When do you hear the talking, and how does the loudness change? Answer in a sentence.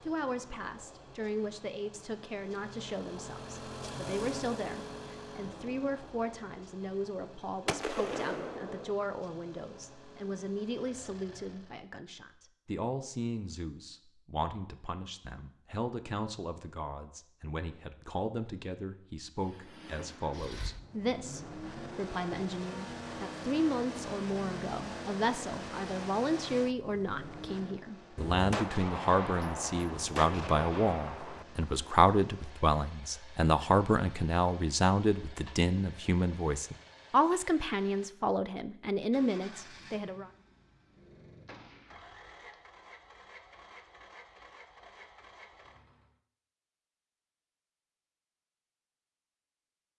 The talking can be heard from 0.0 to 40.3 s, getting louder.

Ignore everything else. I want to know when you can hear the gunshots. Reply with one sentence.
The gunshots can be heard from 7.7 to 8.9 s, from 28.1 to 31.4 s and from 41.5 to 42.5 s.